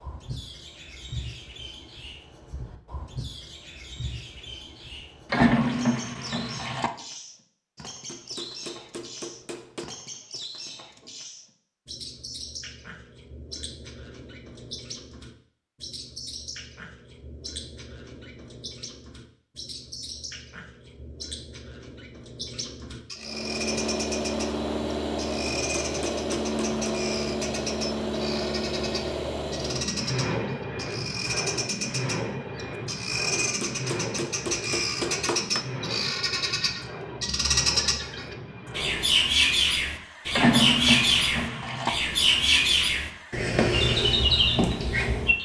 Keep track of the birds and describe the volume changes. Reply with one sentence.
The volume of the birds goes up.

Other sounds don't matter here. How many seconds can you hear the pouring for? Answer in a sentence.
You can hear the pouring for 3 seconds altogether.